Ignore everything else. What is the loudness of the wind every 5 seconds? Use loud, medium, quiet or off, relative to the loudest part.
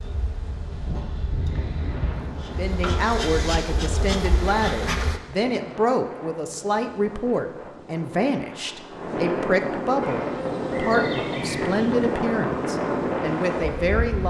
medium, medium, loud.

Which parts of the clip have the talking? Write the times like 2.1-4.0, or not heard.
2.5-14.2.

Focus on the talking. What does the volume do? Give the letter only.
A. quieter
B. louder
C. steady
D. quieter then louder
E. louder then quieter
C.